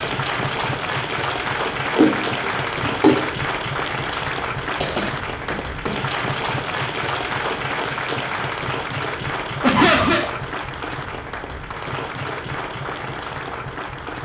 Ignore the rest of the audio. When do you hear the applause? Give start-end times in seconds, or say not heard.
0.0-14.2.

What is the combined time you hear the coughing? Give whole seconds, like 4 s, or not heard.
3 s.